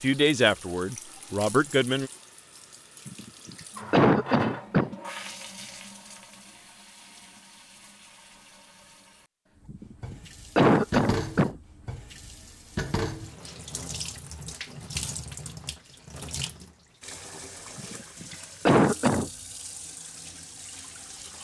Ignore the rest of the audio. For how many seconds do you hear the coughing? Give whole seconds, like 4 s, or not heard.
5 s.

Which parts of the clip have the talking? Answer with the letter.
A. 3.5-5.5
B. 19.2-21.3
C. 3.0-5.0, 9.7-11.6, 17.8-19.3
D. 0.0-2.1
D.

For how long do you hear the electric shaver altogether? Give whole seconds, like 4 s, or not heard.
not heard.